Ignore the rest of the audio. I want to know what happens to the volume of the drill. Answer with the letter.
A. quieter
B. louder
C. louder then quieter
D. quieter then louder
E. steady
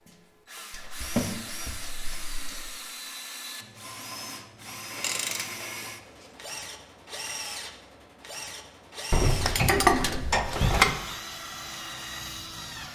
E.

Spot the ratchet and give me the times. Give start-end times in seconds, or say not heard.
0.7-2.7, 5.0-5.8, 9.1-10.9.